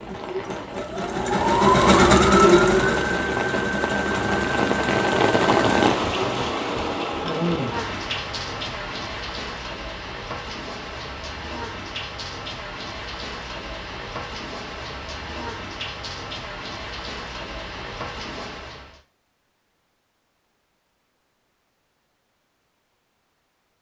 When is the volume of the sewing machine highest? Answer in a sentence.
The volume of the sewing machine peaks at 2 seconds.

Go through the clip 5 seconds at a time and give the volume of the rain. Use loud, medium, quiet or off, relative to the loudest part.
loud, loud, medium, medium, off.